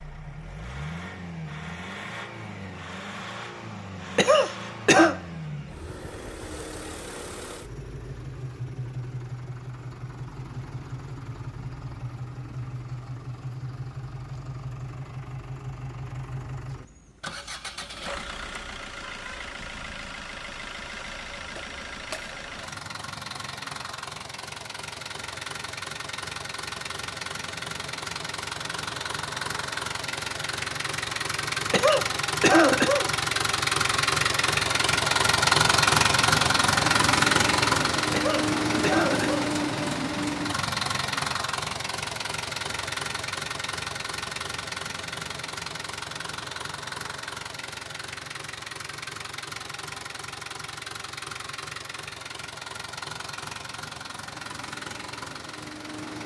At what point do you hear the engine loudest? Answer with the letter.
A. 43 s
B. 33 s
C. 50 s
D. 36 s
D.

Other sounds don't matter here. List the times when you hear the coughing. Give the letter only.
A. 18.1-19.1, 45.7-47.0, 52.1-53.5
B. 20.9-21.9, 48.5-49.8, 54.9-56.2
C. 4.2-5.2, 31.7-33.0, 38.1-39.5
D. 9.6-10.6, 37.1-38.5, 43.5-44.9
C.